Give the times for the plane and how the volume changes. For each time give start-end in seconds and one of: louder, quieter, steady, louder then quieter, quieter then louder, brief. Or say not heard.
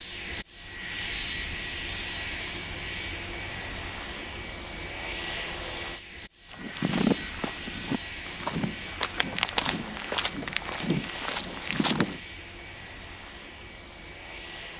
0.0-14.7 quieter.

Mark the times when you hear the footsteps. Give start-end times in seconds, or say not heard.
6.5-12.2.